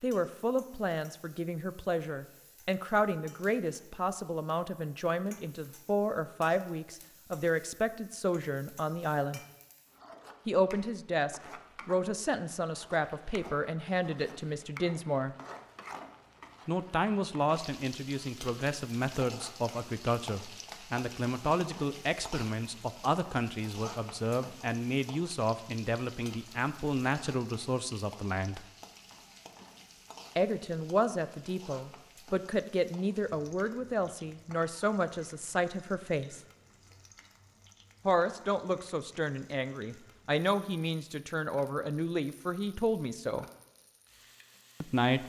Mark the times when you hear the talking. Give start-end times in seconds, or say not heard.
0.0-9.4, 10.4-15.3, 16.6-28.6, 30.4-36.4, 38.0-43.5, 44.8-45.2.